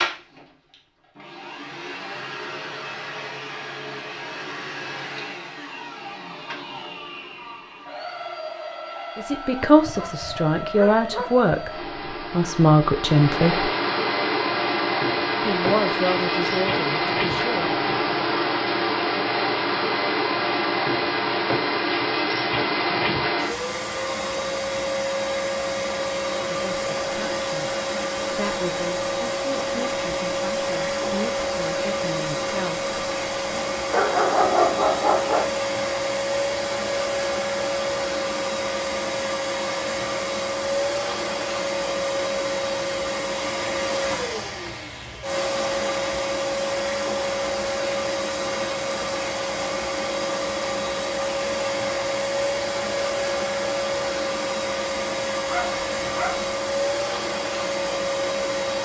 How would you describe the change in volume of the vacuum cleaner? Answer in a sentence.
The loudness of the vacuum cleaner goes up.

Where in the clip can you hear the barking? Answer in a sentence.
You can hear the barking from 9.8 to 11.5 s, from 33.9 to 35.5 s and from 55.5 to 56.5 s.